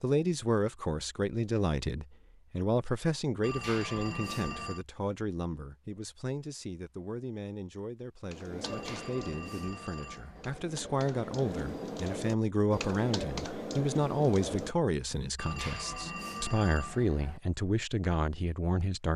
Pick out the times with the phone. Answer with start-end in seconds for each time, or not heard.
3.4-4.8, 8.7-10.7, 15.3-17.4.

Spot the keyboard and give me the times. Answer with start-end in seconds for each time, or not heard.
8.2-15.2.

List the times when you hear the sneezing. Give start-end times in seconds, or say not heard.
not heard.